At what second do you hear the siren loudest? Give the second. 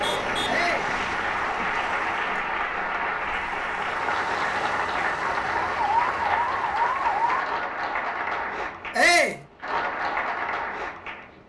6 s.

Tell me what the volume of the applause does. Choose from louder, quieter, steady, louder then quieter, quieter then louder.
steady.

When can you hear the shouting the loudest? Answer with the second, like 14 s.
9 s.